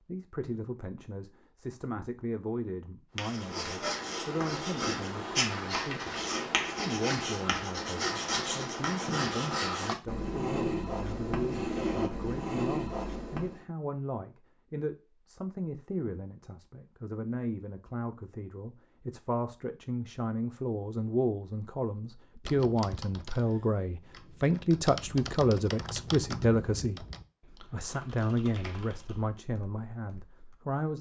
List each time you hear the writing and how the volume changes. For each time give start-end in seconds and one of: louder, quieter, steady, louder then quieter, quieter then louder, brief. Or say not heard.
3.1-13.6 steady.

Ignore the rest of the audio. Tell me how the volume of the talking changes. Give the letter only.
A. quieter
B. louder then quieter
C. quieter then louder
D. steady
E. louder
E.